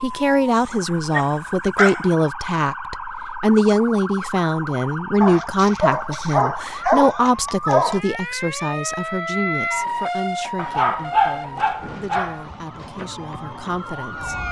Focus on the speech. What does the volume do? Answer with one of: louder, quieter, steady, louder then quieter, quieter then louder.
quieter.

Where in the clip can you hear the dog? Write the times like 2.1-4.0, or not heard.
1.1-2.1, 5.2-8.0, 10.6-12.4.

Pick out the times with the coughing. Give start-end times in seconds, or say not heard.
not heard.